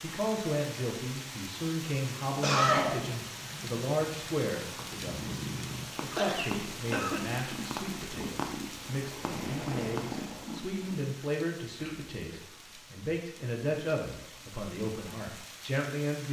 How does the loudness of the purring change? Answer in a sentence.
The volume of the purring goes up.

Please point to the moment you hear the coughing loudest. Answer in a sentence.
The loudest moment of the coughing is at 3 seconds.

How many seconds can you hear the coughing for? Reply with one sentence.
You can hear the coughing for 2 seconds altogether.